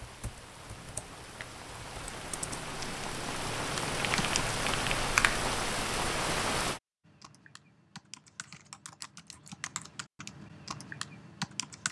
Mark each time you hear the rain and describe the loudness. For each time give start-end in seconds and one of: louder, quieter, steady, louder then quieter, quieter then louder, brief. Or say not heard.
0.0-6.8 louder.